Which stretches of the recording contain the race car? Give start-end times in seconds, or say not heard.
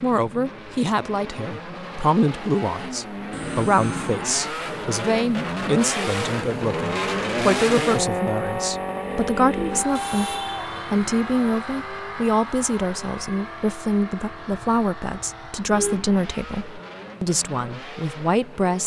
0.0-18.8.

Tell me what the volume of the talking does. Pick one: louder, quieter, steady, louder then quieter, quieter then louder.
steady.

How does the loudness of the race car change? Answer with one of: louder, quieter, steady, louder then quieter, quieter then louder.
louder then quieter.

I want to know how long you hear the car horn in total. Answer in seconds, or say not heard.
3 s.